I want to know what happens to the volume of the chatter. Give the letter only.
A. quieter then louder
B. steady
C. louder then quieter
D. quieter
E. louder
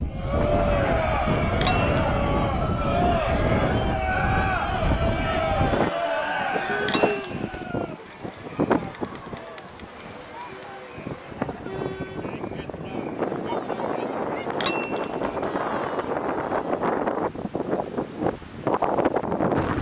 D.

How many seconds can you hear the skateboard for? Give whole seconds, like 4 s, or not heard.
not heard.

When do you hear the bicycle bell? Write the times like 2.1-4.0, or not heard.
1.6-2.4, 6.8-7.7, 14.5-15.3.